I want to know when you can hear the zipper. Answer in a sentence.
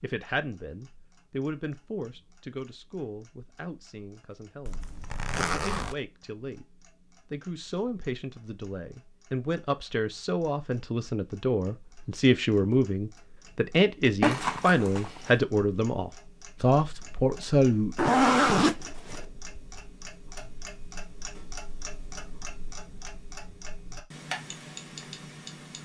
The zipper can be heard from 4.7 to 6.0 s, from 14.2 to 15.3 s and from 17.9 to 19.2 s.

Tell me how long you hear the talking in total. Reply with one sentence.
You can hear the talking for 17 seconds altogether.